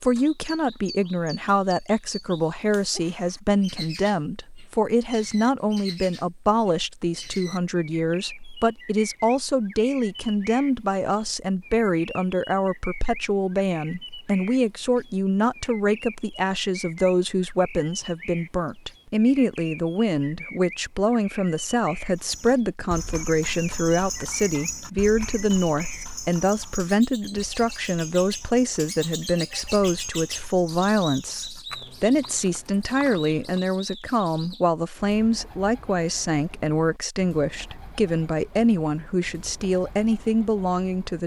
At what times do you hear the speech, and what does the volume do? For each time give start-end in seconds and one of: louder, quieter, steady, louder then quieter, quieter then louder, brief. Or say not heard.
0.0-41.2 steady.